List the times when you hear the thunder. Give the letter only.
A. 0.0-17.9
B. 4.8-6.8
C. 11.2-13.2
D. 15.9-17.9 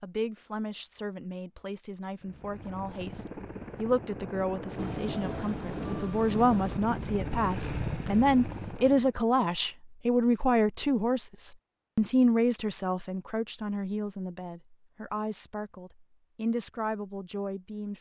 B.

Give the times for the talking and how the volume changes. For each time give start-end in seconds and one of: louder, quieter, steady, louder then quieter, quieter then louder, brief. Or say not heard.
0.0-17.9 louder then quieter.